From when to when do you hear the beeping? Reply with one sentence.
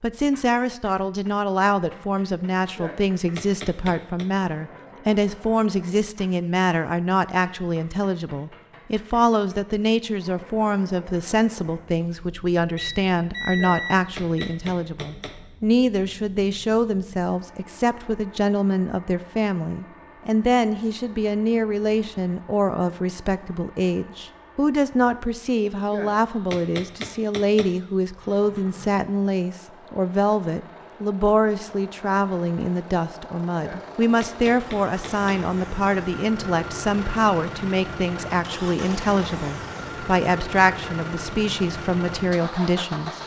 The beeping can be heard from 12.0 to 14.5 s.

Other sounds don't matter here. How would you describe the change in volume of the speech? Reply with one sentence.
The volume of the speech stays about the same.